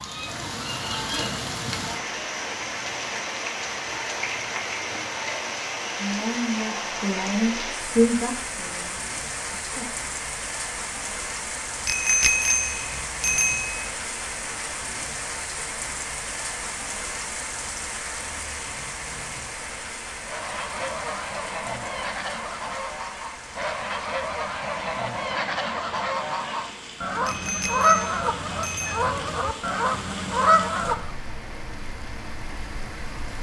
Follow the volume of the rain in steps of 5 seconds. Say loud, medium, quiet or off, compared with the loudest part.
loud, loud, loud, loud, medium, medium, medium.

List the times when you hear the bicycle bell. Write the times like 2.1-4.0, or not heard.
11.8-13.8, 27.2-29.1.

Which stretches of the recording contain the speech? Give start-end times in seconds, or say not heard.
6.0-9.9.